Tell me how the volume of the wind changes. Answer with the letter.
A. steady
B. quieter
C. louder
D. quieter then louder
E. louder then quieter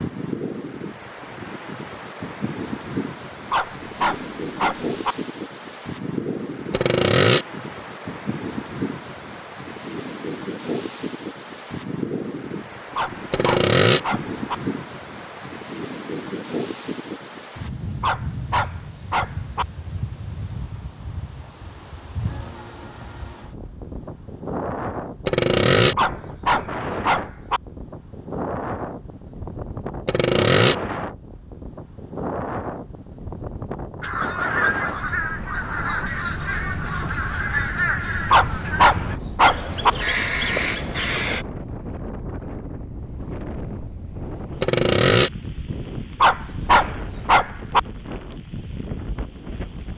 A.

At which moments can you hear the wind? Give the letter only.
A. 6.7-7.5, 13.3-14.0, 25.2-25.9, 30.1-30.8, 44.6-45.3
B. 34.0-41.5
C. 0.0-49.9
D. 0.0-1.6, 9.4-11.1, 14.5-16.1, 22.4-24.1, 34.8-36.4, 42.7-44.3
C.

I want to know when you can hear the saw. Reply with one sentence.
The saw can be heard from 6.7 to 7.5 s, from 13.3 to 14.0 s, from 25.2 to 25.9 s, from 30.1 to 30.8 s and from 44.6 to 45.3 s.